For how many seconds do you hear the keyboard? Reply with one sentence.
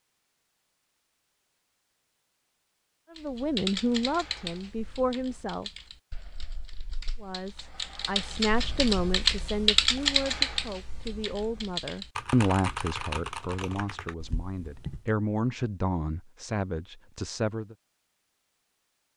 You can hear the keyboard for 12 seconds altogether.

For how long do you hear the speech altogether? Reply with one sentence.
You can hear the speech for 13 seconds altogether.